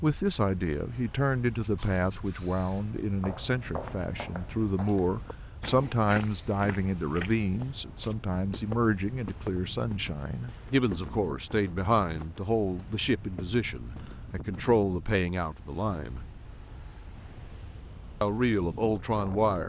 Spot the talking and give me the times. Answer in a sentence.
You can hear the talking from 0.0 to 16.2 s and from 18.2 to 19.6 s.